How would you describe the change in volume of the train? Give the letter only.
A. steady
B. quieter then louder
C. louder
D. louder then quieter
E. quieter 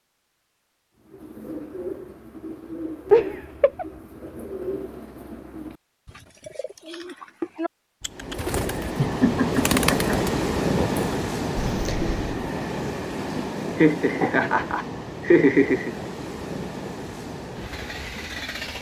E.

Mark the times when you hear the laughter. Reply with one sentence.
The laughter can be heard from 3.1 to 3.9 s, from 8.9 to 10.3 s and from 13.8 to 15.9 s.